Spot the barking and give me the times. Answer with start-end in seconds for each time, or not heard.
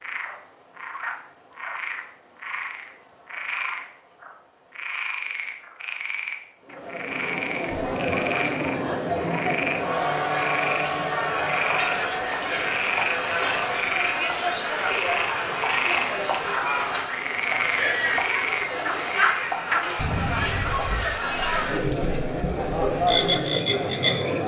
not heard.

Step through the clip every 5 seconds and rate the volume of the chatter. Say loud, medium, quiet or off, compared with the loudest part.
off, loud, loud, loud, loud.